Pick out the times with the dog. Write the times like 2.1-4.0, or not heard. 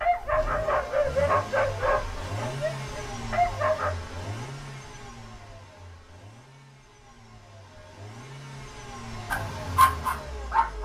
0.0-4.0, 9.3-10.8.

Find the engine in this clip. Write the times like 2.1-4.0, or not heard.
0.0-10.8.